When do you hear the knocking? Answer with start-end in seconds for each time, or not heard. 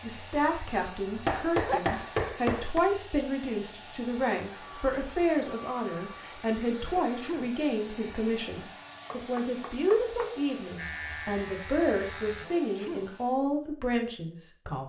1.2-2.8, 9.1-10.3.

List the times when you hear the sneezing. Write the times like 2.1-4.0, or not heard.
1.5-2.0, 6.8-7.5, 12.3-13.1.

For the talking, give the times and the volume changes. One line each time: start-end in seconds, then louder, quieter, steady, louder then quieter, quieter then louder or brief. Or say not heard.
0.0-14.8 steady.